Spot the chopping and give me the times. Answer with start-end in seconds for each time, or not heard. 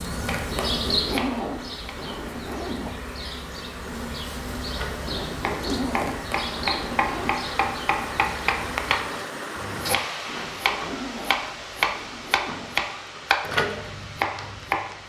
0.1-1.9, 4.7-15.0.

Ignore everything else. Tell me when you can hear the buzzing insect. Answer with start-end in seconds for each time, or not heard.
0.0-9.0.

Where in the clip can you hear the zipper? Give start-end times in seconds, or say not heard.
0.5-3.0, 5.0-7.3, 10.2-12.8.